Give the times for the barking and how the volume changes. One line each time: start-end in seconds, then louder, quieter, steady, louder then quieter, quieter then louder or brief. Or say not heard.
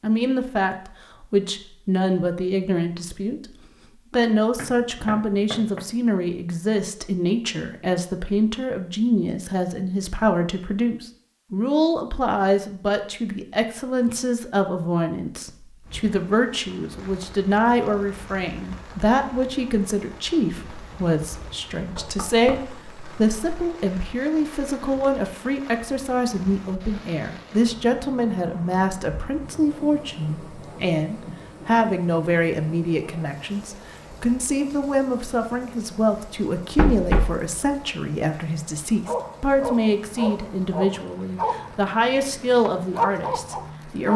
39.0-44.1 quieter then louder.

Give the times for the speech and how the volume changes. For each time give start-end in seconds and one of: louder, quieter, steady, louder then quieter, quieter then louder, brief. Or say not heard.
0.0-44.1 steady.